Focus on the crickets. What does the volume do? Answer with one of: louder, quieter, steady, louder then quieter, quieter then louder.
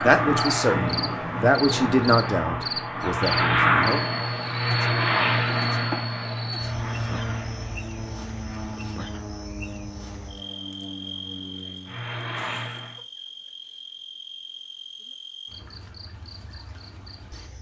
quieter.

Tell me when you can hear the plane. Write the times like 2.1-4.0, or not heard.
0.0-13.0.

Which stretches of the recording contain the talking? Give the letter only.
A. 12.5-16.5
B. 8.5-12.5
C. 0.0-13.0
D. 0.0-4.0
D.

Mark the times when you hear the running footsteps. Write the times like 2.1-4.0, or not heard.
not heard.